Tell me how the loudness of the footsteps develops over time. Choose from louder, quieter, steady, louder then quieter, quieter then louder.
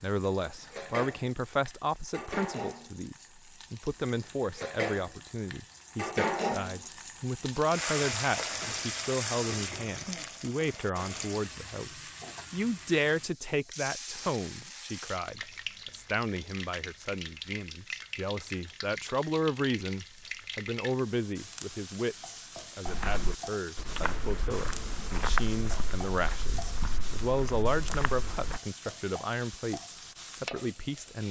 louder then quieter.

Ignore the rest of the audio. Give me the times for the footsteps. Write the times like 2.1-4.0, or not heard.
22.9-28.6.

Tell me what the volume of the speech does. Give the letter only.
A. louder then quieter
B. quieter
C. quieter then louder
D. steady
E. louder
D.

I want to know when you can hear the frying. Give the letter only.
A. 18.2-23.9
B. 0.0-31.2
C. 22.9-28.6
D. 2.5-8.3
B.